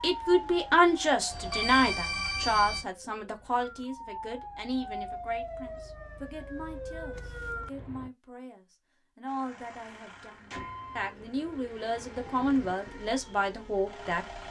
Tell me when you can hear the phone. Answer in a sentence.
You can hear the phone from 1.3 to 2.9 s.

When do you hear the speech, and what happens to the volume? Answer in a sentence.
You can hear the speech from 0.0 to 14.2 s, getting quieter then louder.